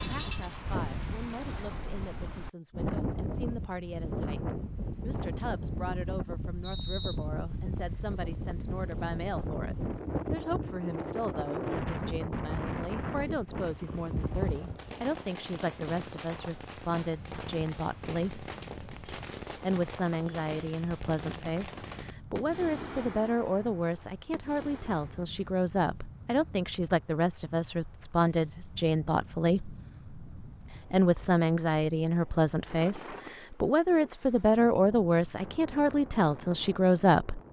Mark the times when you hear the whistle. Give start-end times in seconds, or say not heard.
6.6-7.2.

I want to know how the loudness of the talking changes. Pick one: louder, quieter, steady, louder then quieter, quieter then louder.
louder.